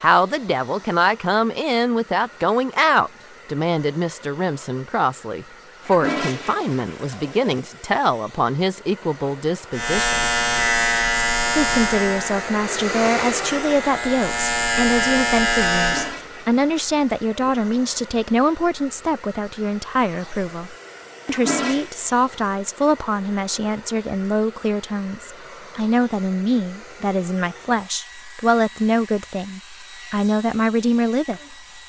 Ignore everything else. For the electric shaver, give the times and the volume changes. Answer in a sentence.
The electric shaver can be heard from 9.7 to 16.1 s, getting quieter then louder.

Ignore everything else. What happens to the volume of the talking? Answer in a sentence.
The volume of the talking stays about the same.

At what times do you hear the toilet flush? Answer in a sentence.
The toilet flush can be heard from 5.8 to 7.6 s, from 15.8 to 17.5 s and from 21.2 to 21.9 s.